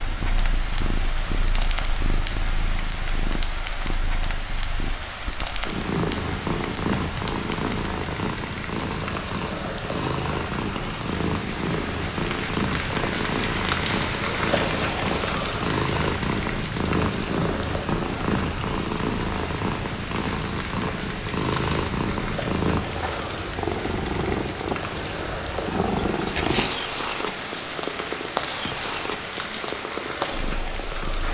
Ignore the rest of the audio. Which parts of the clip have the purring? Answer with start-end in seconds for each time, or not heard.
0.0-31.2.